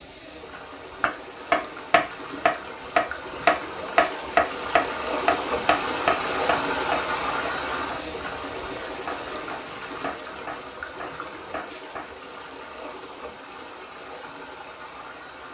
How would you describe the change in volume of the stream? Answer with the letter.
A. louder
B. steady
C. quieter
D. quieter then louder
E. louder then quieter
E.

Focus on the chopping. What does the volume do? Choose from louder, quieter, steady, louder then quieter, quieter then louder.
quieter.